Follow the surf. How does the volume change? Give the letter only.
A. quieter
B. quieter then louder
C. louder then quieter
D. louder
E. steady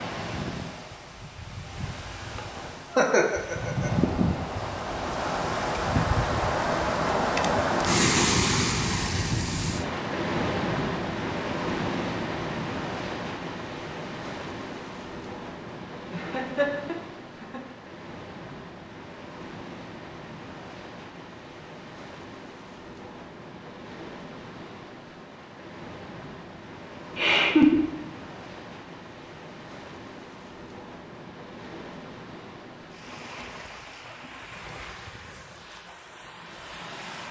A.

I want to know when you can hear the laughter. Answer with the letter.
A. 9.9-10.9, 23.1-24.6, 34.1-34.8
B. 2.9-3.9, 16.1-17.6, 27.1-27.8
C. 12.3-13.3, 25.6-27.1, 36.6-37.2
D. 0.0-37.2
B.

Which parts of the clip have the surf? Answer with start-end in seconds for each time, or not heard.
0.0-37.2.